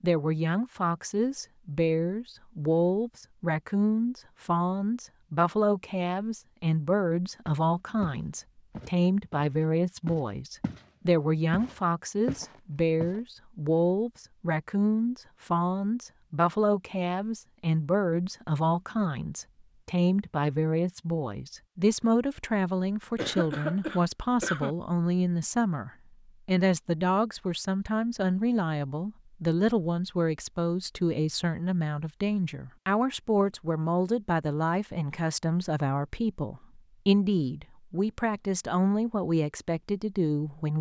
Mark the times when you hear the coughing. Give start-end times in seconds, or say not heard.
23.1-24.8.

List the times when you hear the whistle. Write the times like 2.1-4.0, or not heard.
not heard.